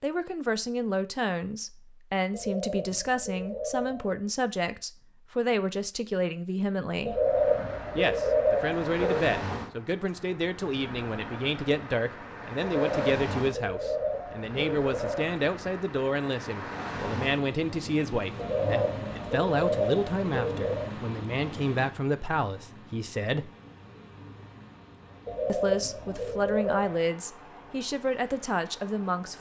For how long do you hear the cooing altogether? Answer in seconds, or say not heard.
11 s.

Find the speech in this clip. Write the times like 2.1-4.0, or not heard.
0.0-7.2, 8.0-23.5, 25.4-29.3.